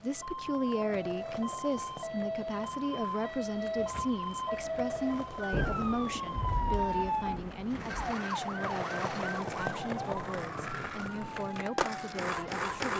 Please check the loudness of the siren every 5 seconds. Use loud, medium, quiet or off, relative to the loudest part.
loud, loud, medium.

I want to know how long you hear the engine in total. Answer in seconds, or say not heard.
2 s.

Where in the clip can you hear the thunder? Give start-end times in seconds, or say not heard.
5.5-8.2.